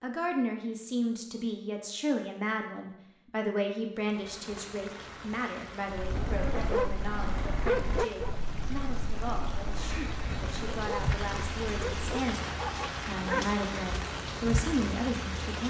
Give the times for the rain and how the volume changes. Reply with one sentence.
The rain can be heard from 4.0 to 15.6 s, getting louder.